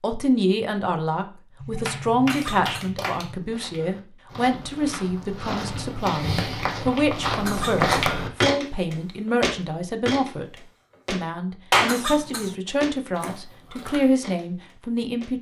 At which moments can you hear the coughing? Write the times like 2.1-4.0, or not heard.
2.2-2.9, 7.5-7.9, 11.8-12.6.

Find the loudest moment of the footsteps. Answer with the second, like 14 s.
8 s.